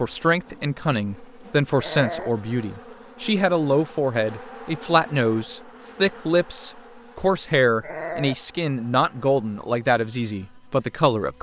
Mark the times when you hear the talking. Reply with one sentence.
The talking can be heard from 0.0 to 11.3 s.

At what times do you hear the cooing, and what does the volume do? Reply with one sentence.
You can't hear the cooing here.